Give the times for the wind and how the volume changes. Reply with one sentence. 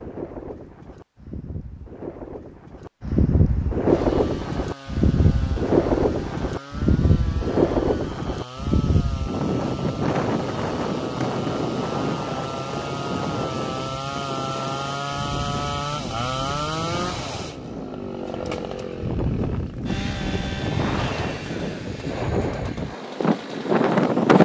You can hear the wind from 0.0 to 24.3 s, getting quieter then louder.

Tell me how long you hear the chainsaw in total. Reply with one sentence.
The chainsaw can be heard for 20 seconds in total.